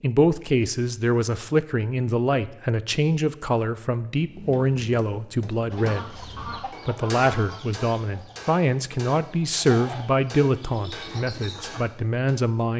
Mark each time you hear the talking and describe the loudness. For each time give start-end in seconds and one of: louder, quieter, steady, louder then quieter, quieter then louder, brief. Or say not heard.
0.0-12.7 steady.